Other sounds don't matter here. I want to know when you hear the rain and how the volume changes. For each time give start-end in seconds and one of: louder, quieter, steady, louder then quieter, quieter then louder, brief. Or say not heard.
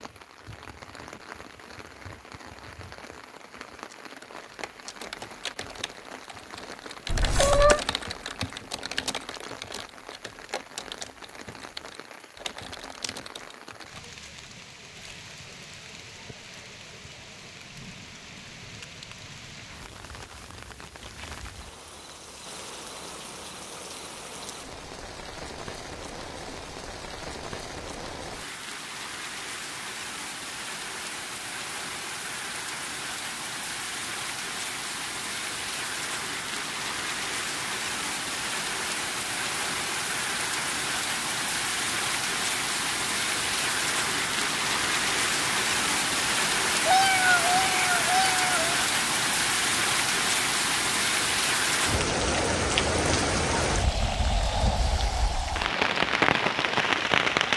0.0-57.5 louder.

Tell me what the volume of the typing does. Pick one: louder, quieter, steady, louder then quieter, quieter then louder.
louder then quieter.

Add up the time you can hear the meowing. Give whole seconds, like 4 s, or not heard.
3 s.